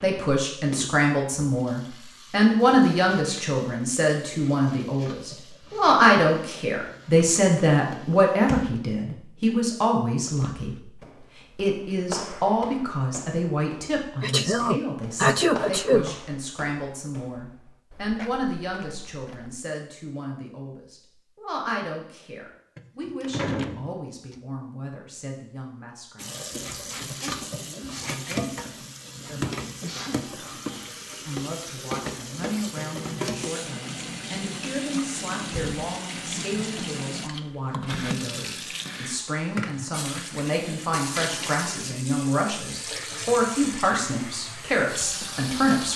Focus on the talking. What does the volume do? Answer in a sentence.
The loudness of the talking goes down, then up.